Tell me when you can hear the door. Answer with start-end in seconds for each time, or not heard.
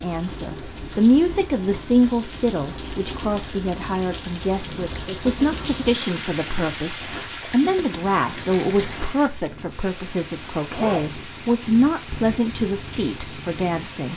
not heard.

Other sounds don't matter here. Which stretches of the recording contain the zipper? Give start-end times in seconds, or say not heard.
10.7-11.1.